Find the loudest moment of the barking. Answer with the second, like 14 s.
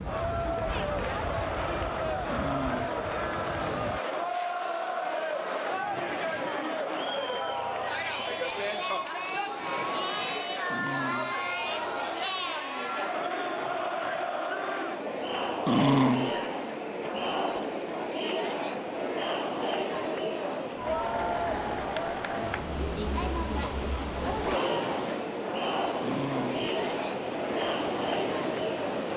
16 s.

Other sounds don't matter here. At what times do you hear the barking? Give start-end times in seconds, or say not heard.
2.2-3.0, 10.7-11.5, 15.7-16.5, 26.0-26.7.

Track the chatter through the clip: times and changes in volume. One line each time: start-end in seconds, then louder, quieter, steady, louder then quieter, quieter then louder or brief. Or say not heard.
0.0-29.1 steady.